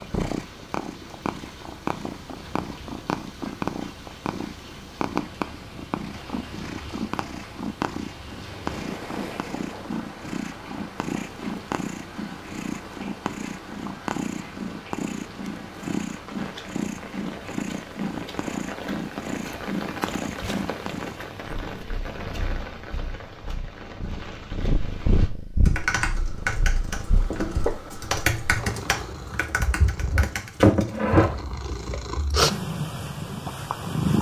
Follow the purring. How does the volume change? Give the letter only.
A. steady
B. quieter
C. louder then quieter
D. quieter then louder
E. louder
A.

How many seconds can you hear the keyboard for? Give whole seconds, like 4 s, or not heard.
6 s.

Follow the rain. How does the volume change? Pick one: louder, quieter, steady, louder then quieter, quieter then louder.
louder.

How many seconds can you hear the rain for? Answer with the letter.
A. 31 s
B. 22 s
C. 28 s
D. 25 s
D.